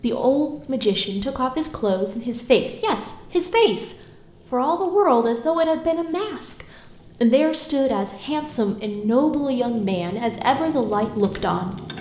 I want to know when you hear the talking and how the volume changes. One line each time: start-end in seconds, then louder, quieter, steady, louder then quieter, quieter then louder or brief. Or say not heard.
0.0-11.9 steady.